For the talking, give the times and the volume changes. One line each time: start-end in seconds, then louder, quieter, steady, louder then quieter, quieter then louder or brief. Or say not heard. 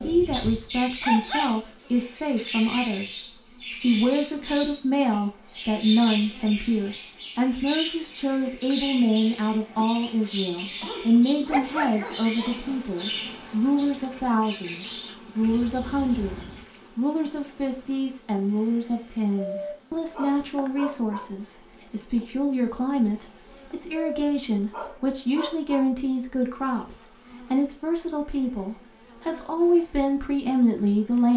0.0-31.3 steady.